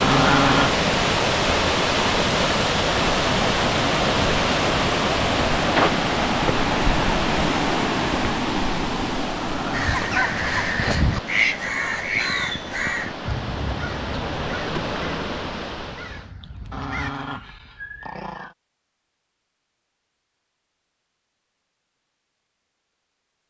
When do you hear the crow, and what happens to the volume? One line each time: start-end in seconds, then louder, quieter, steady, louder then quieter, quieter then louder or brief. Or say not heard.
9.7-17.1 quieter.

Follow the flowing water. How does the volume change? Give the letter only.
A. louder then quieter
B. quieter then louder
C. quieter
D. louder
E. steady
C.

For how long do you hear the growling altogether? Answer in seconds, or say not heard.
3 s.